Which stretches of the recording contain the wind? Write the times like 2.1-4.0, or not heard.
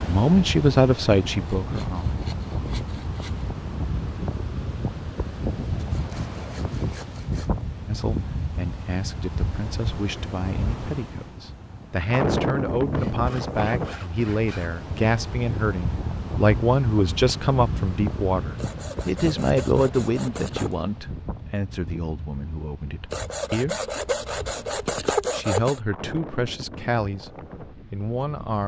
0.0-28.6.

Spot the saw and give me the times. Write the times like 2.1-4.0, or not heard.
1.6-3.5, 5.8-7.5, 12.9-14.7, 18.6-20.8, 23.1-25.8.